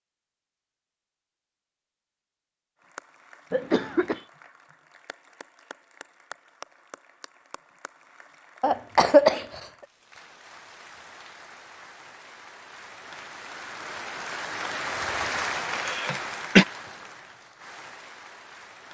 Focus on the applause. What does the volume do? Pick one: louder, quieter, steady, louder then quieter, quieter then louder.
louder.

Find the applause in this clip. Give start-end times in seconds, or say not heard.
2.8-18.8.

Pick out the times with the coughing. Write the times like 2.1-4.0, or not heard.
3.5-4.2, 8.6-9.6, 15.8-16.6.